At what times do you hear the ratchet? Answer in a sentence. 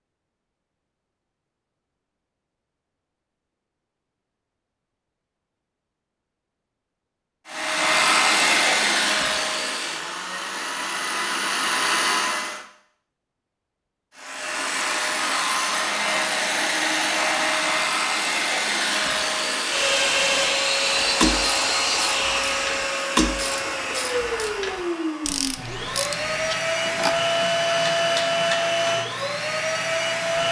The ratchet can be heard from 20.9 to 27.1 s.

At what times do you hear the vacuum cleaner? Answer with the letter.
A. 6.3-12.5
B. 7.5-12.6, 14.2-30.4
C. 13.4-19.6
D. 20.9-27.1
B.